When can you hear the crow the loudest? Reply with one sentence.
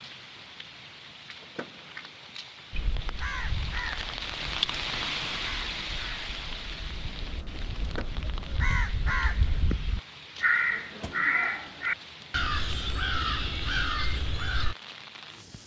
The loudest moment of the crow is at 11 seconds.